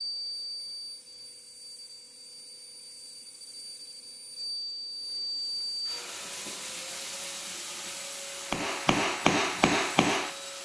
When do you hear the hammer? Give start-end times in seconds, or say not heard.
8.4-10.6.